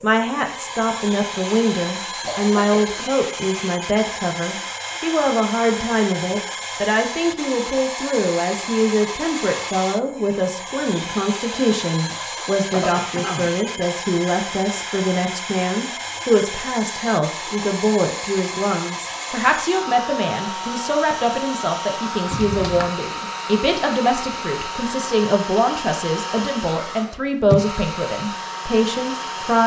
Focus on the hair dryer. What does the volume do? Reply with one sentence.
The loudness of the hair dryer stays about the same.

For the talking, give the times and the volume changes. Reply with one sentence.
You can hear the talking from 0.0 to 29.6 s, at a steady volume.